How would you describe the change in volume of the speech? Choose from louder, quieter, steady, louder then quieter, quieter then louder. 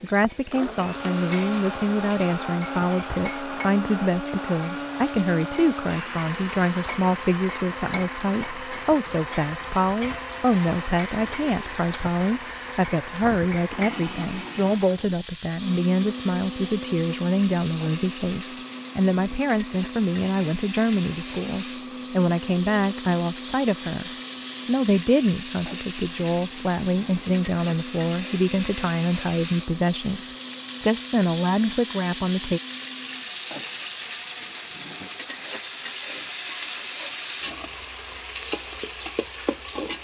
steady.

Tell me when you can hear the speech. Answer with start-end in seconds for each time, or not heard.
0.0-32.6.